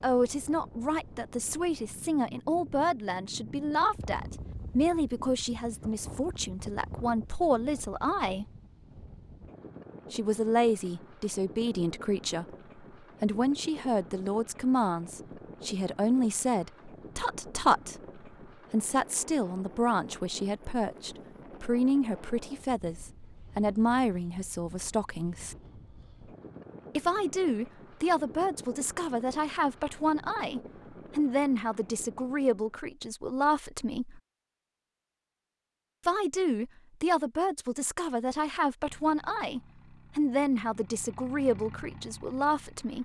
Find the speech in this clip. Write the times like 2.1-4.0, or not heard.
0.0-8.4, 10.1-12.6, 13.2-25.6, 26.9-34.2, 36.0-43.0.